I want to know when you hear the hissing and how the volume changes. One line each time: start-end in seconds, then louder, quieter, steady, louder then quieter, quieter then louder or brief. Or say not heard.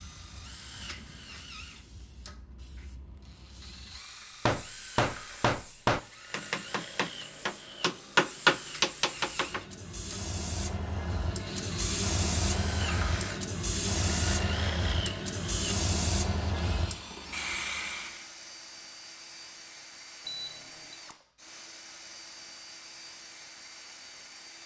0.0-18.3 louder.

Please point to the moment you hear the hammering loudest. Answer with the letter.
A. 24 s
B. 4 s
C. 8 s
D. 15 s
C.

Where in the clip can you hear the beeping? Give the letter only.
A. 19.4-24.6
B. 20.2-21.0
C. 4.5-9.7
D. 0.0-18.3
B.